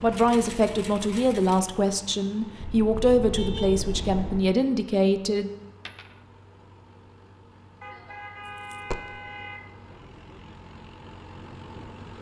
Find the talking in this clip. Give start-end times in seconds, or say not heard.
0.0-5.5.